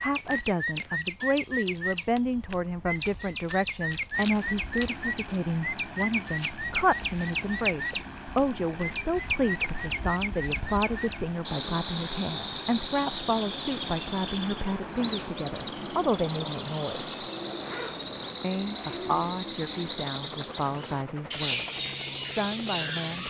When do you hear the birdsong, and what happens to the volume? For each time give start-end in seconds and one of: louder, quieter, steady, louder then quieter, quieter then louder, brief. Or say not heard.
0.0-23.2 steady.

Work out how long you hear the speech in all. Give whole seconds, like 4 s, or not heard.
22 s.